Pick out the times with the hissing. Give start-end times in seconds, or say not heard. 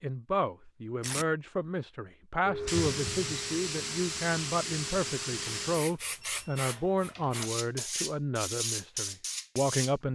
2.4-10.0.